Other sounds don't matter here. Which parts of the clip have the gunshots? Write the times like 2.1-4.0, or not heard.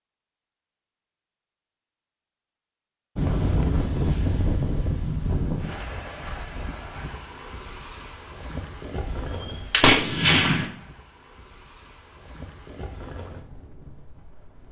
9.0-10.7.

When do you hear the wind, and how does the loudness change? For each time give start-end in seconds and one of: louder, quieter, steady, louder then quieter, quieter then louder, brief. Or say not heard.
3.1-14.6 quieter then louder.